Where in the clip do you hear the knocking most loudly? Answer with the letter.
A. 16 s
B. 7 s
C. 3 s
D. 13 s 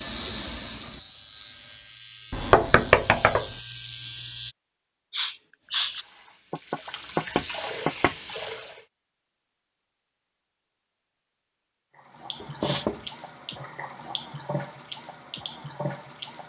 C.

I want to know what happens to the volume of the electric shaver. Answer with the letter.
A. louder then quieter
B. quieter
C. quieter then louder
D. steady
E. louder
E.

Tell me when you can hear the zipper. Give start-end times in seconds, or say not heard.
not heard.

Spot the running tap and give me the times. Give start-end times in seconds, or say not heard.
0.0-2.0, 5.6-8.8, 11.9-16.4.